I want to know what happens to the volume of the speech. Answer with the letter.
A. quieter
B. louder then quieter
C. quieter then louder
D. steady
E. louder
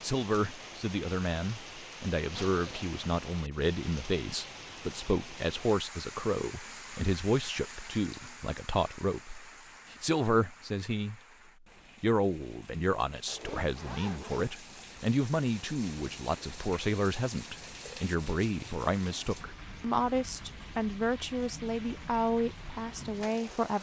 D.